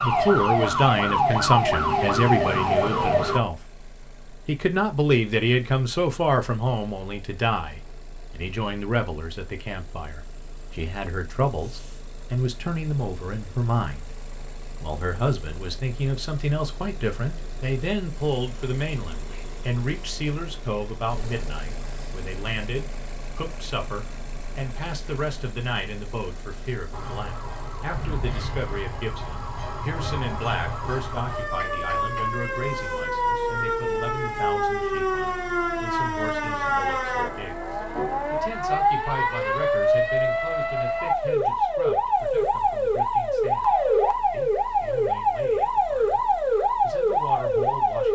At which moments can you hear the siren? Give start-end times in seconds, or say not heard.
0.0-3.4, 26.9-48.1.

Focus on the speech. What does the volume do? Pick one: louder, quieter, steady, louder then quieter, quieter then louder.
quieter.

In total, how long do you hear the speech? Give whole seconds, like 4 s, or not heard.
48 s.